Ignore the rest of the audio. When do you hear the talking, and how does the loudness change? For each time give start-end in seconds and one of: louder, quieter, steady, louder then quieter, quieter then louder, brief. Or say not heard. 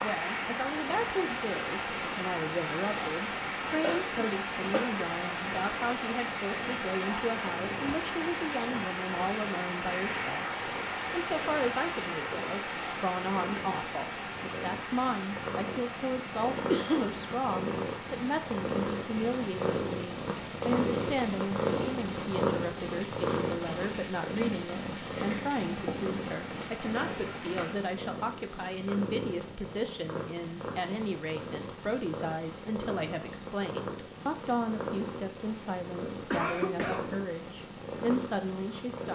0.0-39.1 steady.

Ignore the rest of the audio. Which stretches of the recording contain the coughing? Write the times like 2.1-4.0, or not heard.
3.8-5.0, 16.6-17.2, 36.3-37.0.